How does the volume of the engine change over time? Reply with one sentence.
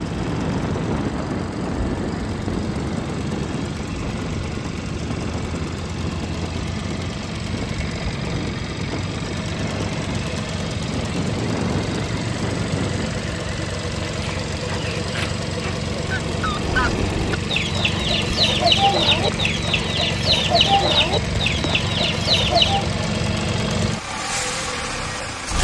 The loudness of the engine goes up.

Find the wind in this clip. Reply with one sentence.
The wind can be heard from 0.0 to 13.3 s.